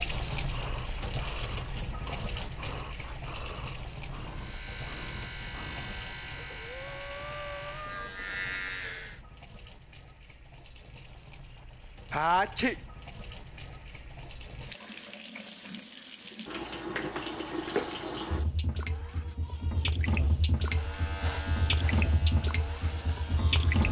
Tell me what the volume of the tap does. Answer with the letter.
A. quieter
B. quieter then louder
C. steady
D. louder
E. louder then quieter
B.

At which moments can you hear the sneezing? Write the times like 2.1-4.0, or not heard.
12.1-12.8.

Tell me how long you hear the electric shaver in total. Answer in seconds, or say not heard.
8 s.